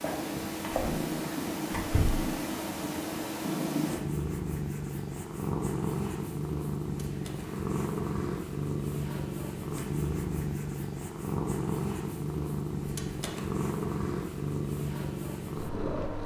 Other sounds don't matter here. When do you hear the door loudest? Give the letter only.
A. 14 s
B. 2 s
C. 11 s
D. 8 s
B.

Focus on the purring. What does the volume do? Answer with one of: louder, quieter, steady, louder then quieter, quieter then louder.
steady.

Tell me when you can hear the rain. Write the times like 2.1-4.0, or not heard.
not heard.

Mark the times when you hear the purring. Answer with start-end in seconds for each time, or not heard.
0.0-16.2.